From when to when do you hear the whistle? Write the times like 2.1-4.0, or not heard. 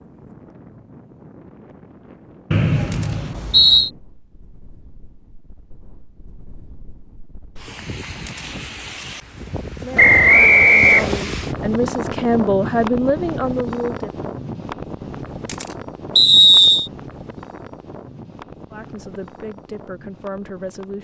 2.5-3.9, 9.9-11.2, 16.1-16.9.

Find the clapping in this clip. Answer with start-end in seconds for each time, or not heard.
not heard.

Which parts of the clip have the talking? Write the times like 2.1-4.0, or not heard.
9.8-14.2, 18.7-20.9.